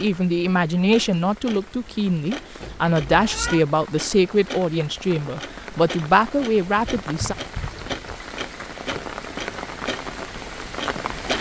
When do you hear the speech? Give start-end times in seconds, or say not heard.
0.0-7.3.